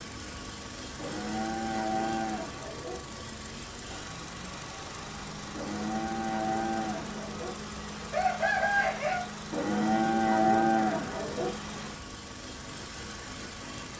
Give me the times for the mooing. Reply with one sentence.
You can hear the mooing from 0.9 to 3.0 s, from 5.5 to 7.5 s and from 9.5 to 11.6 s.